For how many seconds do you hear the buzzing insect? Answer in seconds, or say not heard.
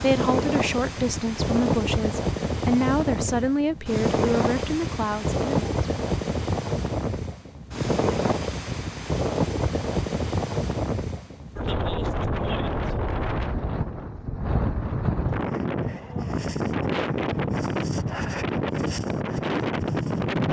not heard.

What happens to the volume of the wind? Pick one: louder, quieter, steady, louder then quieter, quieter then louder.
steady.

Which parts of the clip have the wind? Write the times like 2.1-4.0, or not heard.
0.0-20.4.